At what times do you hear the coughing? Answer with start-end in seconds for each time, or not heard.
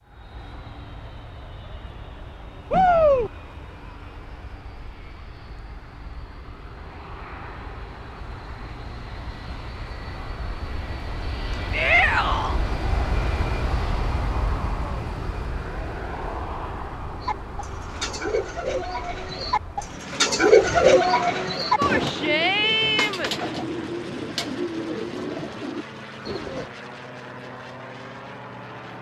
not heard.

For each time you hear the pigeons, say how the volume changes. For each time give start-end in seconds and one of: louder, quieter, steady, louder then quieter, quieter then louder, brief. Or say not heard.
17.2-26.7 louder then quieter.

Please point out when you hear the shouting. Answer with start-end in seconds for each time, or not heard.
2.7-3.3, 11.7-12.6, 21.8-23.3.